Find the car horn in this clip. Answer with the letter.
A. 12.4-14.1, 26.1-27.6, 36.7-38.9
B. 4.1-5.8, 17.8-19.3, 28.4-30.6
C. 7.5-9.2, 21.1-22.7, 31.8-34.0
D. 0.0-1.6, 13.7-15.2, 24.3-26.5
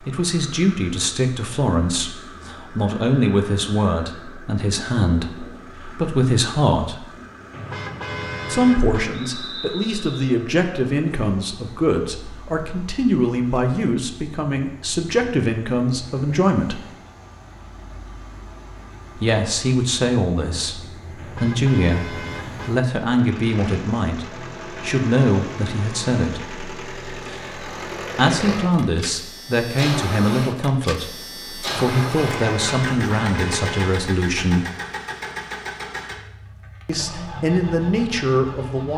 C.